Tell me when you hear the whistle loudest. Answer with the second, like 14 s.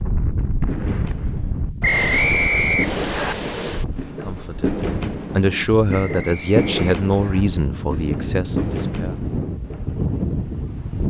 2 s.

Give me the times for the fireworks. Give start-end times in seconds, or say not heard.
0.5-10.1.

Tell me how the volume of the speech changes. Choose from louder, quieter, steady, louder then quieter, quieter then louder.
louder then quieter.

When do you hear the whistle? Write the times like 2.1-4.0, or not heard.
1.8-3.4, 5.9-7.5.